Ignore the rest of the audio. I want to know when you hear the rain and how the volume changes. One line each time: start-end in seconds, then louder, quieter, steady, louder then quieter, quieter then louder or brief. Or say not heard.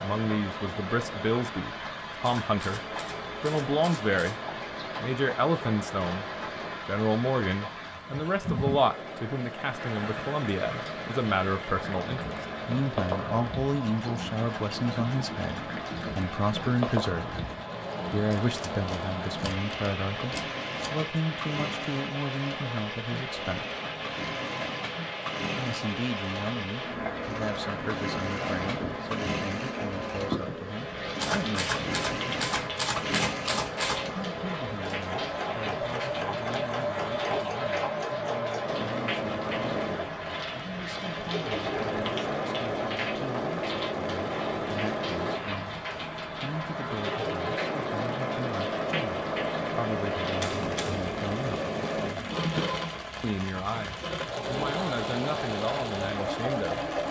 0.0-57.0 steady.